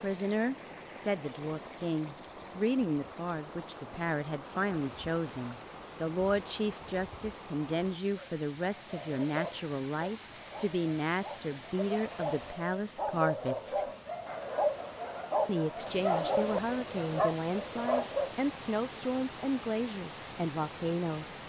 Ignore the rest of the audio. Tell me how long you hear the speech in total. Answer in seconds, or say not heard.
20 s.